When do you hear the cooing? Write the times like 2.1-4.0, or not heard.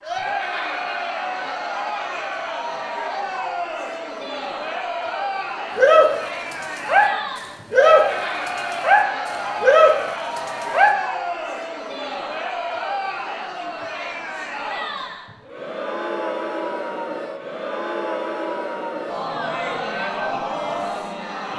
5.8-7.1, 7.7-10.9.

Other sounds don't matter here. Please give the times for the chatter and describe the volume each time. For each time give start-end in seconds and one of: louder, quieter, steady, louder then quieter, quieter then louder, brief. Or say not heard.
0.0-21.5 steady.